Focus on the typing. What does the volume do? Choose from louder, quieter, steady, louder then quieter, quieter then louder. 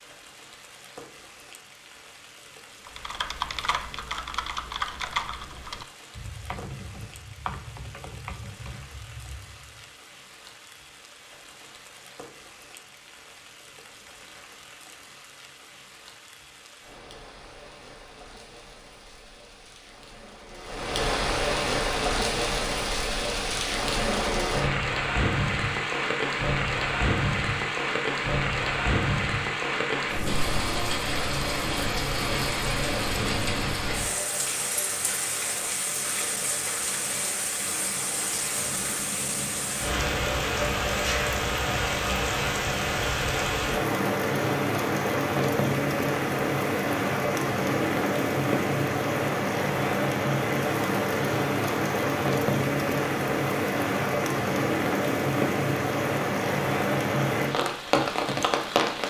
quieter.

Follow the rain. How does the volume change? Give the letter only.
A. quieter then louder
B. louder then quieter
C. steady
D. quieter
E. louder
E.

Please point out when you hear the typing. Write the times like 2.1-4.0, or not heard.
2.9-9.9.